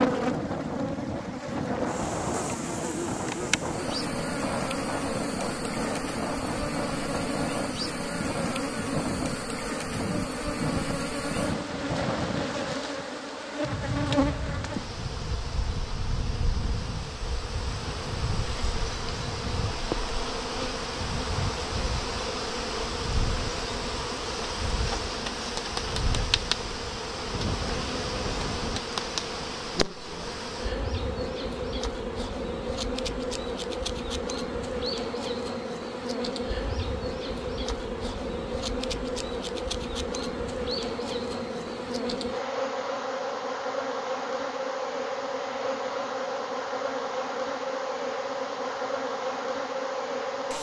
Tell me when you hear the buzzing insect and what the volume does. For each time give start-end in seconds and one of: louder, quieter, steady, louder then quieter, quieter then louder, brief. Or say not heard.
0.0-50.5 steady.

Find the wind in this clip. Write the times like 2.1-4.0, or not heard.
0.0-28.8.